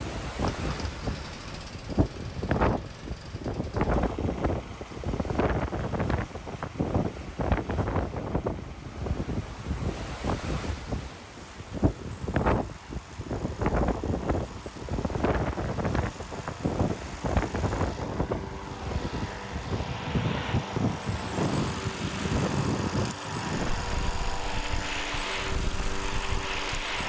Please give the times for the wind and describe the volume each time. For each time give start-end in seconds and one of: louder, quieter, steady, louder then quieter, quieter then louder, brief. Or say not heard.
0.0-27.0 steady.